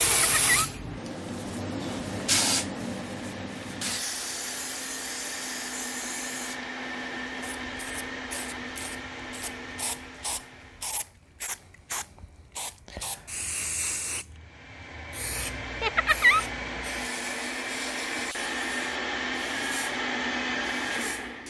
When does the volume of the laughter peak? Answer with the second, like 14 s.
16 s.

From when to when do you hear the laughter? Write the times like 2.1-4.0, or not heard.
0.1-0.7, 15.8-16.4.